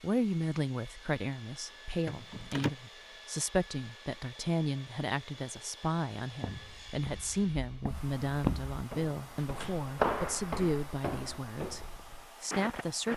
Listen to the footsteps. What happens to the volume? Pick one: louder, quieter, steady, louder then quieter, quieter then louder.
louder then quieter.